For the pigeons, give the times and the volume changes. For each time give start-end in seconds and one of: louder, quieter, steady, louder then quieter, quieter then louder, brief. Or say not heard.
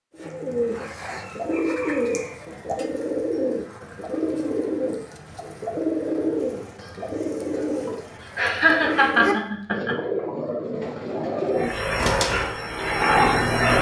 0.1-12.4 steady.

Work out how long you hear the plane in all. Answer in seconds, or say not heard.
2 s.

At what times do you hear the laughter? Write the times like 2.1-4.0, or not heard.
8.3-9.9.